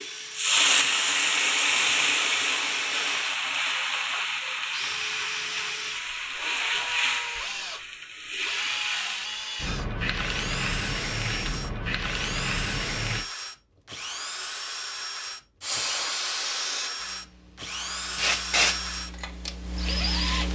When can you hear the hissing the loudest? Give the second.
1 s.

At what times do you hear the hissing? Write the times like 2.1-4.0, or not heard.
0.0-13.2, 15.6-20.5.